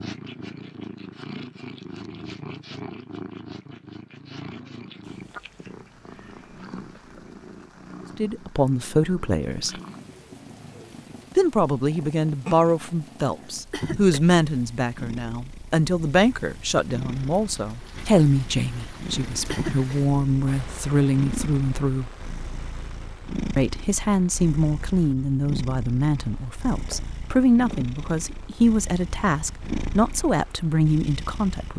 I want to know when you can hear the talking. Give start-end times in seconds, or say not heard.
8.2-9.8, 11.3-22.1, 23.6-31.7.